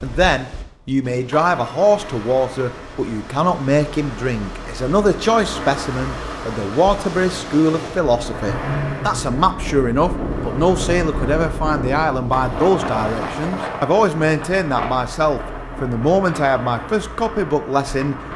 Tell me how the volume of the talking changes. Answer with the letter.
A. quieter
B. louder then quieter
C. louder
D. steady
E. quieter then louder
D.